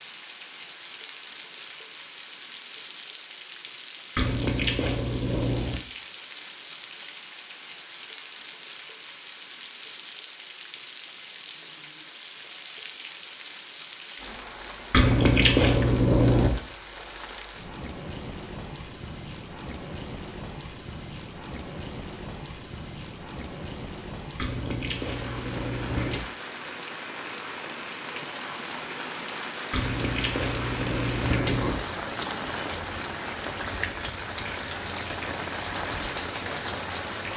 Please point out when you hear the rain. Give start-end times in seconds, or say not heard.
0.0-37.3.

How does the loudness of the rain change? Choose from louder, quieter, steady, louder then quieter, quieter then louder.
louder.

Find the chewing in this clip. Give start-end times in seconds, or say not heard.
4.2-5.8, 14.9-16.5, 24.4-26.2, 29.7-31.8.